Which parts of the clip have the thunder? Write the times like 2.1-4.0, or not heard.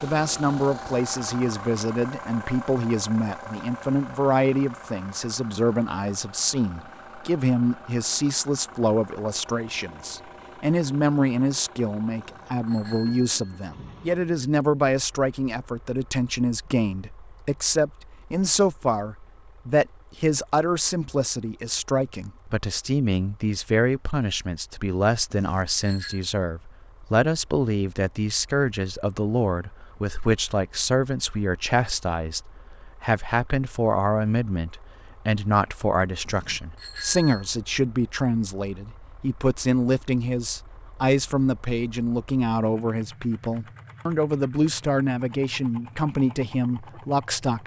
not heard.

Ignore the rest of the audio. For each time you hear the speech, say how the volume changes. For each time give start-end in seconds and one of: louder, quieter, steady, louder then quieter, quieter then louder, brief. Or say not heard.
0.0-47.6 steady.